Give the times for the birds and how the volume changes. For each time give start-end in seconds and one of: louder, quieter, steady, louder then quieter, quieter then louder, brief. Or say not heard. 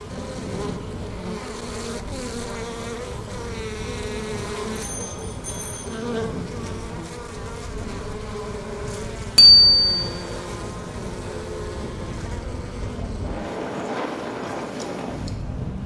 not heard.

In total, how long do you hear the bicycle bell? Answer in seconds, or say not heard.
2 s.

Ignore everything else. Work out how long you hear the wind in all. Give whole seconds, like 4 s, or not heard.
16 s.